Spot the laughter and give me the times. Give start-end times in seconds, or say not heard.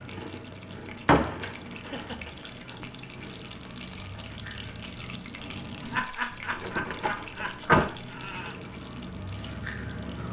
1.6-2.3, 5.8-8.6.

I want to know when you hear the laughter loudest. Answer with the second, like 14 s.
6 s.